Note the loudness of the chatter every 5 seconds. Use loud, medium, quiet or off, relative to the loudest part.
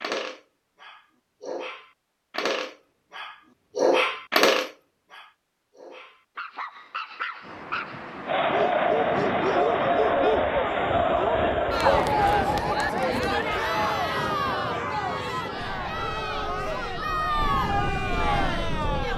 off, loud, loud, medium.